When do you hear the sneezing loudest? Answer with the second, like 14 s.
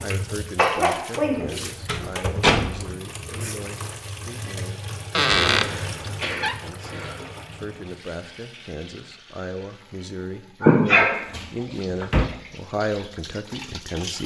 11 s.